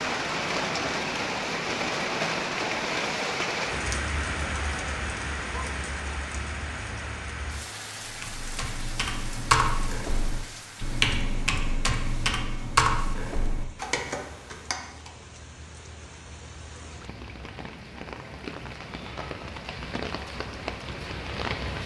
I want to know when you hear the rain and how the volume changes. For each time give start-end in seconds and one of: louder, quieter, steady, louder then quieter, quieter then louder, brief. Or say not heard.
0.0-21.8 quieter then louder.